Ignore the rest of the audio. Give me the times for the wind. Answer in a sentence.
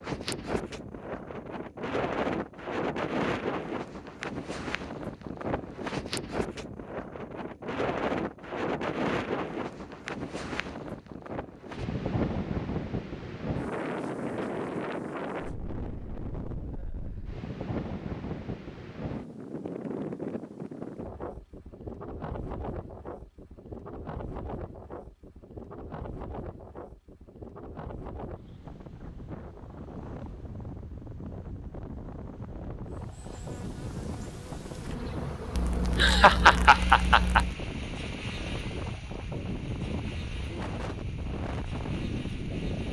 You can hear the wind from 0.0 to 42.8 s.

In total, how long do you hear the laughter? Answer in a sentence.
You can hear the laughter for 2 seconds altogether.